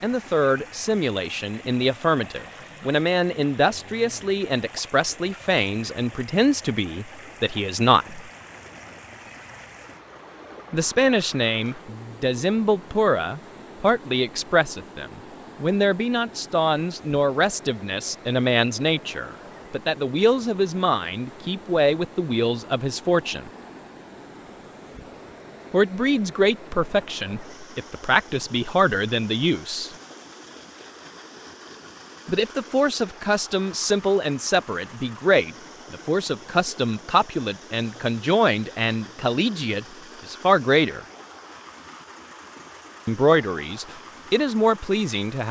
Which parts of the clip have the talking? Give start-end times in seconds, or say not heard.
0.0-8.2, 10.7-23.5, 25.7-29.9, 32.2-41.0, 43.0-45.4.